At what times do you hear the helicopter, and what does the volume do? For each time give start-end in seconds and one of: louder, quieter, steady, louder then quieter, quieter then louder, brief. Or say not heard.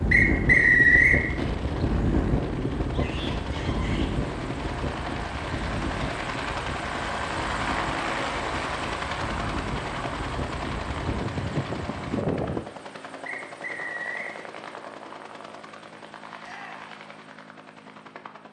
0.0-18.4 louder then quieter.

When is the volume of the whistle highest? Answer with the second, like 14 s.
1 s.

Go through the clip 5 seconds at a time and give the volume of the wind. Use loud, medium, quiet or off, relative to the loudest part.
loud, medium, loud, off.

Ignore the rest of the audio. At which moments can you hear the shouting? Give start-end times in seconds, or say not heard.
2.9-4.1, 16.4-16.9.